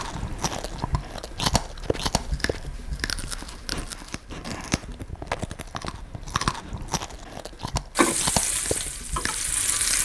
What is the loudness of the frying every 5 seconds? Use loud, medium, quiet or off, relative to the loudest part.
off, loud.